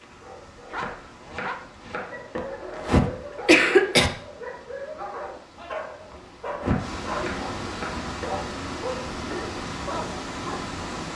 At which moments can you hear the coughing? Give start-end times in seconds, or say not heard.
2.4-4.1, 6.1-7.3.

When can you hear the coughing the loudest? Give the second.
4 s.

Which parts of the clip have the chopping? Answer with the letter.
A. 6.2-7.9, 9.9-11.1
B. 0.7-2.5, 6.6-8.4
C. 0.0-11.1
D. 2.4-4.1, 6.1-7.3
B.